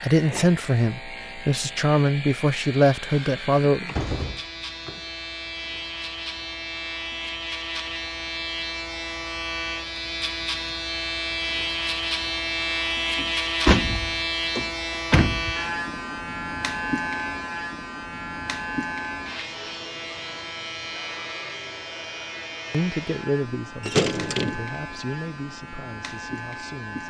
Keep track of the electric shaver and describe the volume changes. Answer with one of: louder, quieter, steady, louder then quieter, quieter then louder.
louder then quieter.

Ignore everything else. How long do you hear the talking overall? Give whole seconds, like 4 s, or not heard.
8 s.